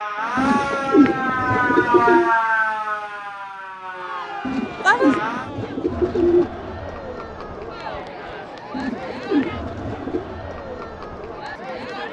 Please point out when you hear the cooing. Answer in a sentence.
The cooing can be heard from 0.3 to 2.4 s, from 4.5 to 6.5 s and from 8.7 to 10.2 s.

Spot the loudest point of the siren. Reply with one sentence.
The volume of the siren peaks at 2 seconds.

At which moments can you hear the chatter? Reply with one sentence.
The chatter can be heard from 3.9 to 12.0 s.